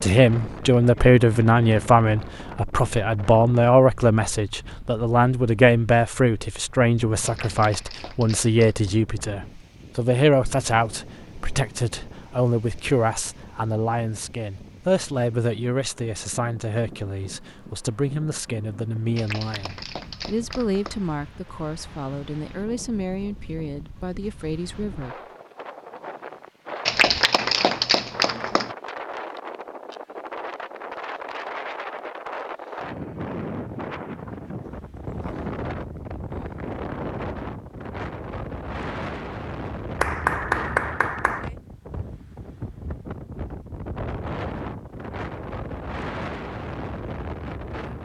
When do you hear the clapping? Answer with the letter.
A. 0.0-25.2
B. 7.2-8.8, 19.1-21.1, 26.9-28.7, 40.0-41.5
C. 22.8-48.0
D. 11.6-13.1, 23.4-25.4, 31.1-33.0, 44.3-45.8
B.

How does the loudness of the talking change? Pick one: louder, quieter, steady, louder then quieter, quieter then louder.
quieter.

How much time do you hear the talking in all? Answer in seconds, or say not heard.
25 s.